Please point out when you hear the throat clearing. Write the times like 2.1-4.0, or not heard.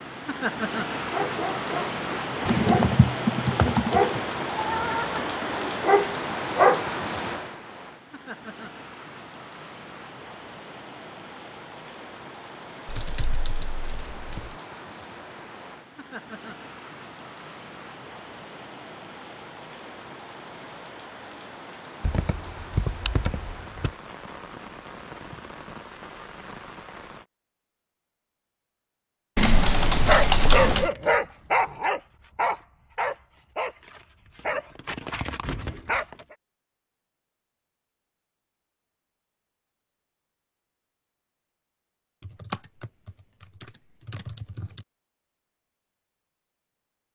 not heard.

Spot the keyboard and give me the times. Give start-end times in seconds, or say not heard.
2.5-4.2, 12.8-14.6, 22.0-23.9, 29.4-30.9, 42.2-44.9.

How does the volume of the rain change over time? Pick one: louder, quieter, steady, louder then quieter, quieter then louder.
quieter.